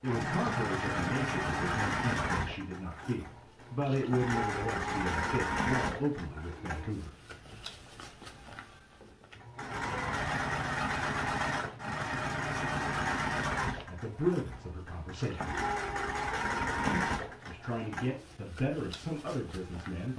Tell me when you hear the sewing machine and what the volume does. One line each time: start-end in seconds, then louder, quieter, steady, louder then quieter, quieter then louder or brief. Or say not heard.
0.0-20.1 steady.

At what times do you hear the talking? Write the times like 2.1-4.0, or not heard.
0.0-7.2, 13.8-15.6, 16.9-20.1.